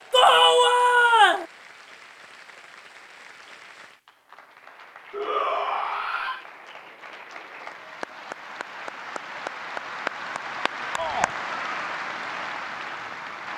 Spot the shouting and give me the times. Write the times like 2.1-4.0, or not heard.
0.1-1.4, 5.1-6.5, 10.9-11.3.